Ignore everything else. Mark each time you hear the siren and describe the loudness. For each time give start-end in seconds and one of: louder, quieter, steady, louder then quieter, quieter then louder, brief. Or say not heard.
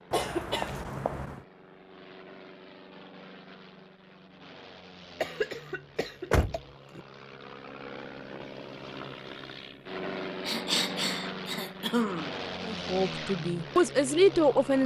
not heard.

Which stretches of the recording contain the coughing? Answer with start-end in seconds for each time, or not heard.
0.1-1.4, 5.2-6.6, 10.4-12.3.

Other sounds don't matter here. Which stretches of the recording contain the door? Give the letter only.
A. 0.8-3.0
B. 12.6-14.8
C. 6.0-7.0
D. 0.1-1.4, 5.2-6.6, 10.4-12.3
C.